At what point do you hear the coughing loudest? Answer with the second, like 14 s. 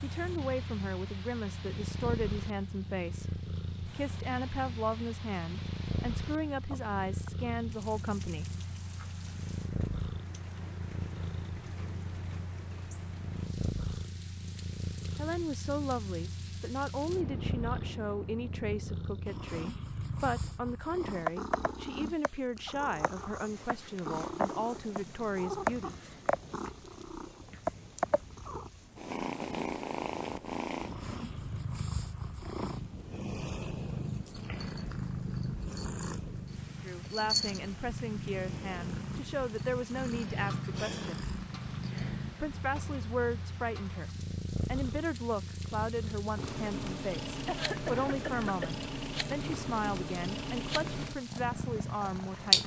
48 s.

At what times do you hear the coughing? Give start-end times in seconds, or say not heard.
6.7-7.3, 47.5-48.8.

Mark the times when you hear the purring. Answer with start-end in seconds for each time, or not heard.
0.0-52.6.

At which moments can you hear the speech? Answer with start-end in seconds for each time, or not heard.
0.0-8.5, 15.2-25.9, 36.8-41.0, 42.4-52.6.